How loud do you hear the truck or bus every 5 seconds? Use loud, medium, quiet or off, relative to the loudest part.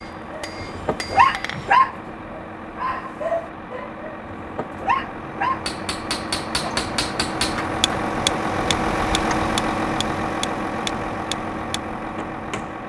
medium, loud, loud.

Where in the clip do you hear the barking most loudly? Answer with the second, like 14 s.
2 s.